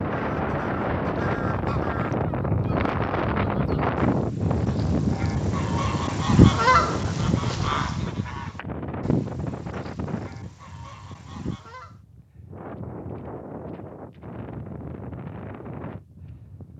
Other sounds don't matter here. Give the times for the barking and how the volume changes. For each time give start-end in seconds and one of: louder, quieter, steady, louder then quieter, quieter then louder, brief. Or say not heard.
not heard.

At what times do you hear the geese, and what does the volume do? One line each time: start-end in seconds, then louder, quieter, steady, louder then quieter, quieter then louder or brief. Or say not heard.
0.1-11.9 louder then quieter.